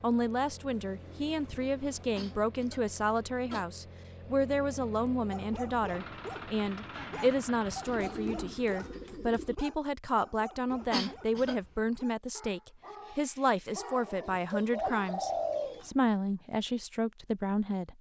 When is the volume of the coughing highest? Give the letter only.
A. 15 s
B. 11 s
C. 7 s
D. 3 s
B.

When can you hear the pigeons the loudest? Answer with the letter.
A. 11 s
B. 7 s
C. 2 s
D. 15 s
D.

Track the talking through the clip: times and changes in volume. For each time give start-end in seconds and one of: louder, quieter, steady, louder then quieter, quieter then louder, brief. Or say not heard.
0.0-17.9 steady.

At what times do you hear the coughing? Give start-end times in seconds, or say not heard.
1.9-3.6, 10.7-11.7.